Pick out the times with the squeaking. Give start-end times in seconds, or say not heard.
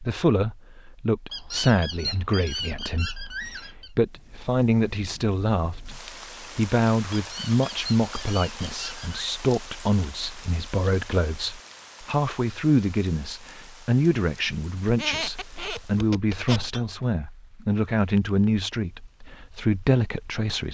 1.3-3.9, 7.1-9.2, 14.8-16.8.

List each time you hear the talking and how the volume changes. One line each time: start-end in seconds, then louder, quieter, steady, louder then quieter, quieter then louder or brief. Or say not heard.
0.0-20.6 steady.